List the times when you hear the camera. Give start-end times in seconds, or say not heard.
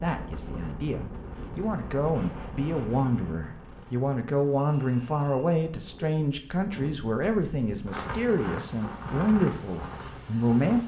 not heard.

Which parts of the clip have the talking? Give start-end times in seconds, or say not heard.
0.0-10.8.